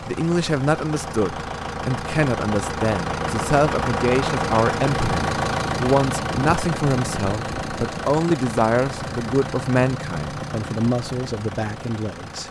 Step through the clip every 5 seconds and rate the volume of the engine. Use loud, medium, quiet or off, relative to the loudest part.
loud, loud, medium.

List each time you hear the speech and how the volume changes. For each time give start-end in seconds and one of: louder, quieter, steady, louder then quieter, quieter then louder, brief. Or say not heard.
0.0-12.4 steady.